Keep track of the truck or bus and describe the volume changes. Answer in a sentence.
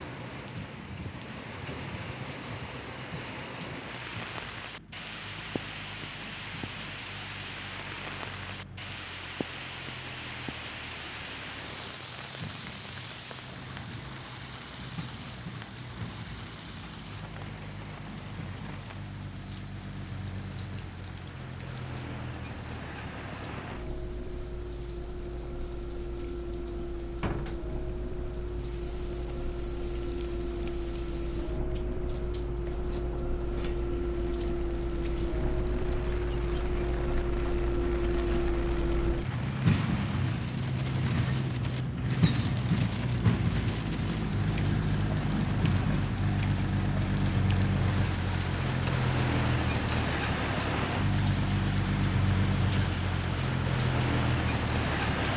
The volume of the truck or bus goes up.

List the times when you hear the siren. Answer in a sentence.
You can't hear the siren here.